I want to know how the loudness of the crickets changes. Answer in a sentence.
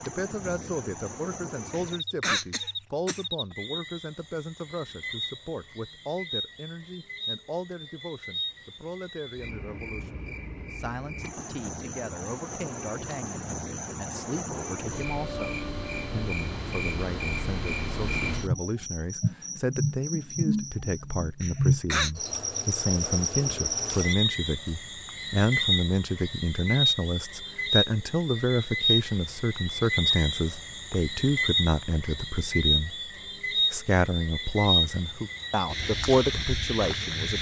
The loudness of the crickets goes up.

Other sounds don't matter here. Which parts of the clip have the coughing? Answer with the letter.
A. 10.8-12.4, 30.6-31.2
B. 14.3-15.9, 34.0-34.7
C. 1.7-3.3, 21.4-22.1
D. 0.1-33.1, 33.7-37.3
C.